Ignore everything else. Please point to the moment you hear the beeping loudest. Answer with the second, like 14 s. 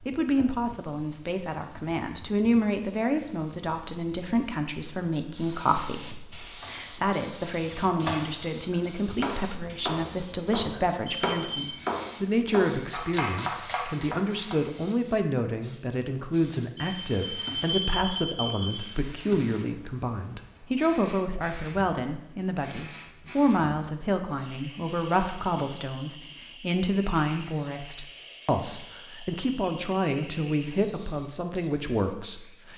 18 s.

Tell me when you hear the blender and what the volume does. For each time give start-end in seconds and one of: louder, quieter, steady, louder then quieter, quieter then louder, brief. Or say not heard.
not heard.